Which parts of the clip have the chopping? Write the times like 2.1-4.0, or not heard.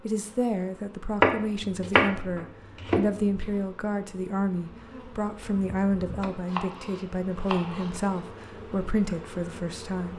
1.2-3.5, 6.5-8.2.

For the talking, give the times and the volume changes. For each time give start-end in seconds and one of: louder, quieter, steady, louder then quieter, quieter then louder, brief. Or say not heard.
0.0-10.1 steady.